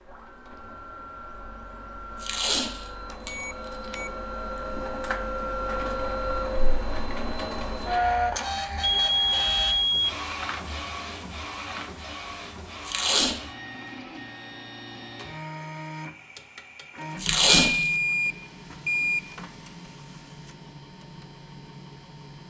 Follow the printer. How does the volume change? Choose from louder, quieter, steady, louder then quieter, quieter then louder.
louder then quieter.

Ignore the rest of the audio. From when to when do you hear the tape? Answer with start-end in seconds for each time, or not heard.
2.2-3.3, 12.8-13.4, 17.1-17.9.